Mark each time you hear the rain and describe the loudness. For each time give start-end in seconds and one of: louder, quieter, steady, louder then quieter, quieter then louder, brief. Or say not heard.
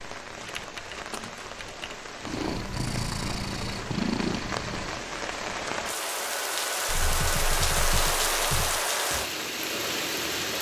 0.0-10.5 louder.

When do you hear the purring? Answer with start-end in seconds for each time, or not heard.
2.2-5.0.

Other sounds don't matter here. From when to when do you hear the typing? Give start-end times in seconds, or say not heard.
0.4-2.0, 6.8-8.8.